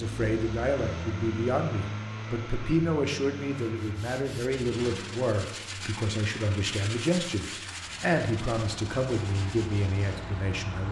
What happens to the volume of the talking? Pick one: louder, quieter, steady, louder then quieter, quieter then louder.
steady.